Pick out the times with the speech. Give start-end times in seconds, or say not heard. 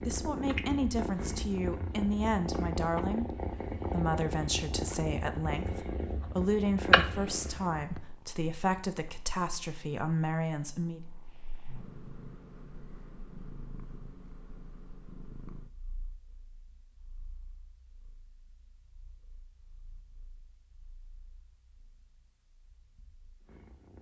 0.1-11.0.